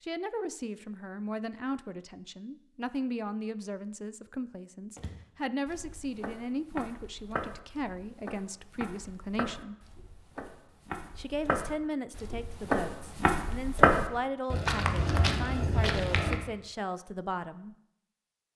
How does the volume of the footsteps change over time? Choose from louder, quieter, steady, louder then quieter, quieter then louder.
louder.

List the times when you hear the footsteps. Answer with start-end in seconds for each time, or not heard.
5.0-16.4.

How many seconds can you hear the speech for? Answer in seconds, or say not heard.
16 s.